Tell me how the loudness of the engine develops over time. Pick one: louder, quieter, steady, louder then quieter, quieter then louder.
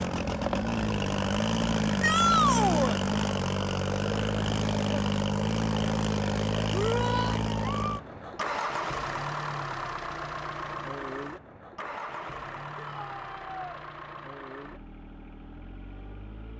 quieter.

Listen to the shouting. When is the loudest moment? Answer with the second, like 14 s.
2 s.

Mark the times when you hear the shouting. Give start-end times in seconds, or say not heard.
2.0-3.0, 6.7-7.4, 12.8-13.8.